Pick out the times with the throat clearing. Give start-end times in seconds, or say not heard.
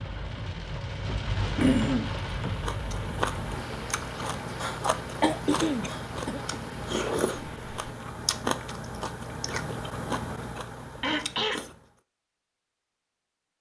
1.6-2.1, 5.2-6.6, 11.0-11.6.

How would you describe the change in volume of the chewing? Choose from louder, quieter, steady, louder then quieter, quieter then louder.
steady.